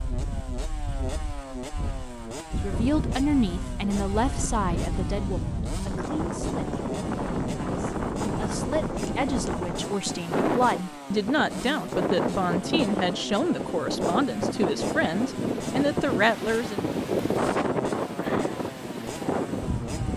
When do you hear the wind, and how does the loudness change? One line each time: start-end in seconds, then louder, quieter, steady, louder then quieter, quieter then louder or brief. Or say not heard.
0.0-20.1 louder.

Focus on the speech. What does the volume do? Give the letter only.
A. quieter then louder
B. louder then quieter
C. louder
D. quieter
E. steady
A.